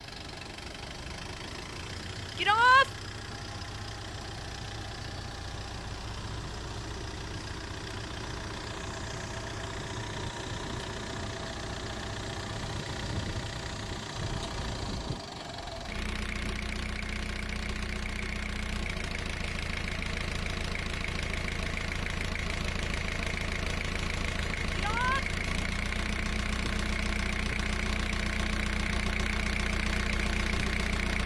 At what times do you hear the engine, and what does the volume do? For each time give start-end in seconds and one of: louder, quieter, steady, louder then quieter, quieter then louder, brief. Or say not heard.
0.0-31.2 louder.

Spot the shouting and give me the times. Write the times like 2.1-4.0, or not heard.
2.4-2.9, 24.7-25.2.